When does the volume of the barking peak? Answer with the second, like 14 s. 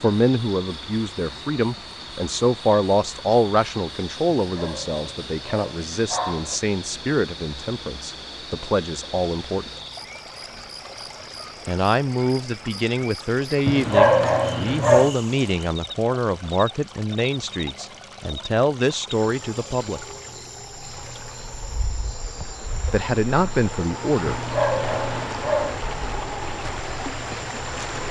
14 s.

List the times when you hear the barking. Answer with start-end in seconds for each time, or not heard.
4.4-6.6, 13.7-15.2, 24.2-25.9.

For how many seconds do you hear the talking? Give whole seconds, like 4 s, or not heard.
20 s.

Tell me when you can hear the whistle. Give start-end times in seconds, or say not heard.
not heard.